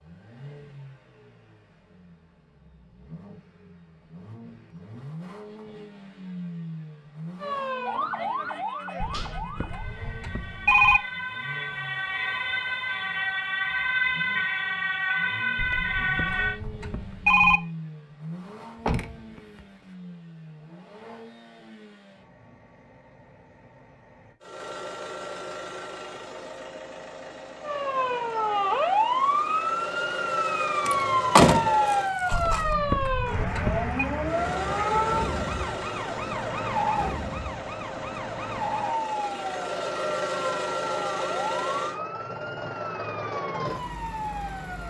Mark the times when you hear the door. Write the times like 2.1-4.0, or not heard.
9.1-9.6, 18.8-19.6, 30.9-32.6.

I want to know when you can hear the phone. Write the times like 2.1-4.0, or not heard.
9.0-11.0, 15.6-17.6, 32.3-34.0.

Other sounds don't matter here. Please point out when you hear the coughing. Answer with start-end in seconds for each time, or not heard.
not heard.